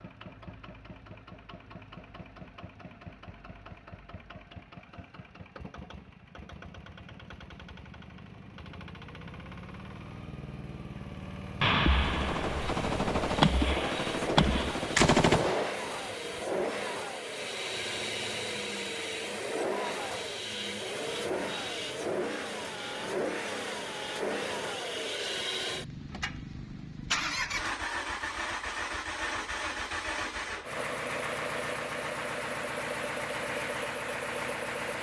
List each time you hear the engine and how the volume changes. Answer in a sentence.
The engine can be heard from 0.0 to 34.9 s, getting louder.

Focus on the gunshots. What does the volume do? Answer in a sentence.
The volume of the gunshots goes up.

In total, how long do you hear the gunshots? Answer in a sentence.
You can hear the gunshots for 4 seconds altogether.